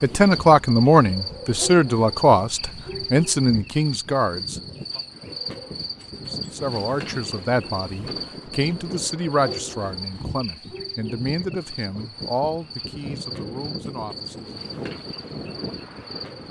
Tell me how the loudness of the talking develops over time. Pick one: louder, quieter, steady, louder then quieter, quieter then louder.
quieter.